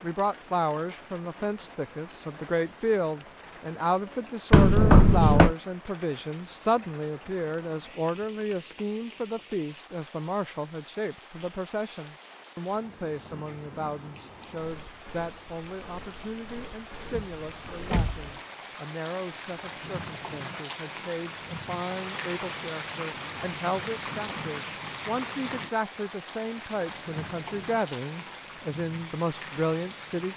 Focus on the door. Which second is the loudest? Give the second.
5 s.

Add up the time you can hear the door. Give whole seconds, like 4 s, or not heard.
2 s.